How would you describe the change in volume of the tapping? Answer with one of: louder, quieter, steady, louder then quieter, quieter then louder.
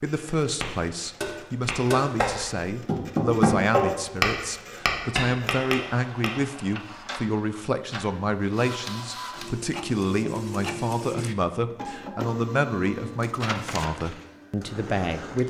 louder then quieter.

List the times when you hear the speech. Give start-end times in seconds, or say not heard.
0.0-15.4.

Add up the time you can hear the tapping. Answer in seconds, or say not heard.
6 s.